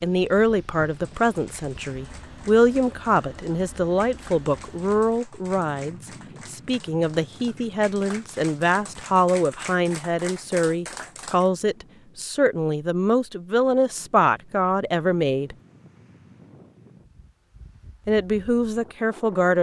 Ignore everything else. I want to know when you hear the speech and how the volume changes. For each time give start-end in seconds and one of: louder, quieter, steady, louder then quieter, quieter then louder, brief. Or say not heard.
0.0-15.6 steady
18.1-19.5 brief.